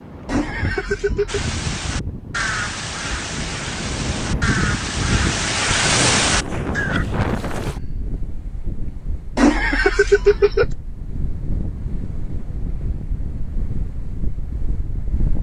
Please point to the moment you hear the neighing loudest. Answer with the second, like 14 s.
10 s.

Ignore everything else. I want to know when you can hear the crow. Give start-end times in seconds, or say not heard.
1.2-7.0.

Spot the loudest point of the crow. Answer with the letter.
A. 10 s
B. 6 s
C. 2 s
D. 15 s
B.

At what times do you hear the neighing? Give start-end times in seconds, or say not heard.
0.2-1.4, 9.3-10.7.